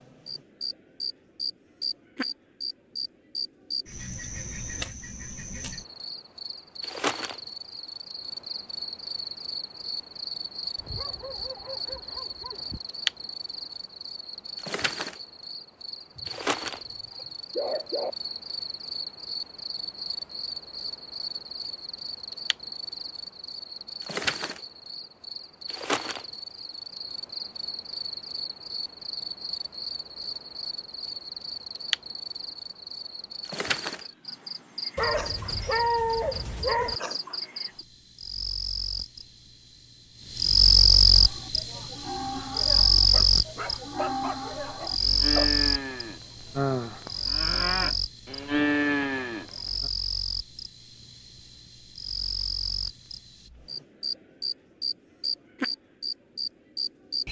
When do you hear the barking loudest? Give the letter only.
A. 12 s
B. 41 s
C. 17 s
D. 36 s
D.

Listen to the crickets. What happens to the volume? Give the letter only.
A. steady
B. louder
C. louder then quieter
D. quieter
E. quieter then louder
C.